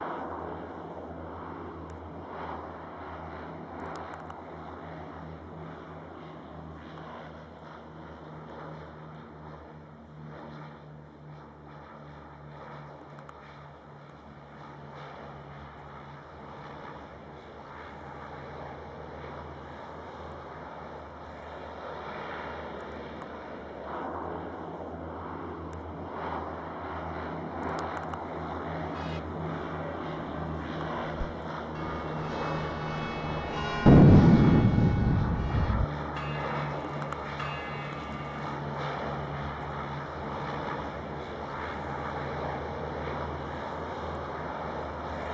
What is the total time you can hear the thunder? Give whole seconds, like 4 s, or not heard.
2 s.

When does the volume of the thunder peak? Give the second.
34 s.